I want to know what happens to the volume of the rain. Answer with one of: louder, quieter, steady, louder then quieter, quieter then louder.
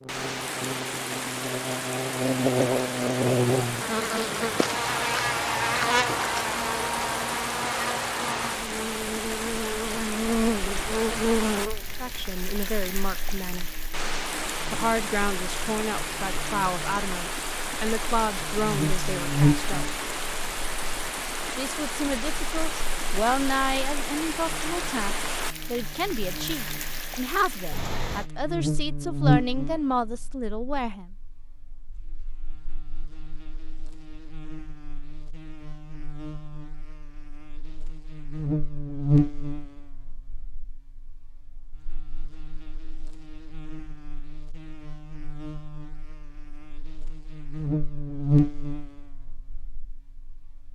steady.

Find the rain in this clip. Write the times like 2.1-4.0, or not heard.
0.1-28.3.